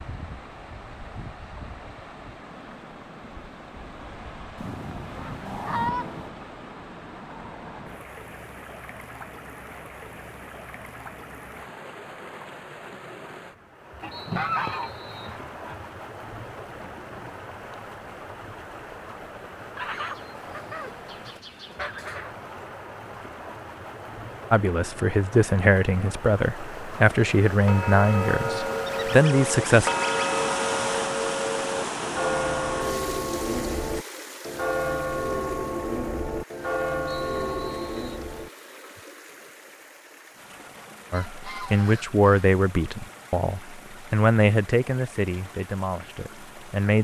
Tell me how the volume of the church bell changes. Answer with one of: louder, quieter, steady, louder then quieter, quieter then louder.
steady.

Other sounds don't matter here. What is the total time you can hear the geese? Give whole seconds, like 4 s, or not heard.
9 s.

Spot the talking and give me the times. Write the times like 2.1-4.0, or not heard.
24.5-29.9, 41.1-46.9.